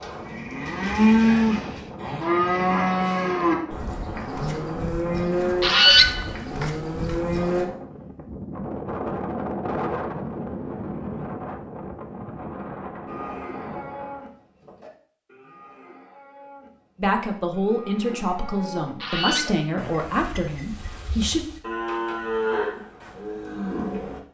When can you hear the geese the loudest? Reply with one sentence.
The loudest moment of the geese is at 6 seconds.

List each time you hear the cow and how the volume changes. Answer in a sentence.
The cow can be heard from 0.0 to 7.7 s, getting quieter; and from 13.1 to 24.3 s, getting quieter then louder.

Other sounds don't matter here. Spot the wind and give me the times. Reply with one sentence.
You can hear the wind from 0.0 to 14.3 s.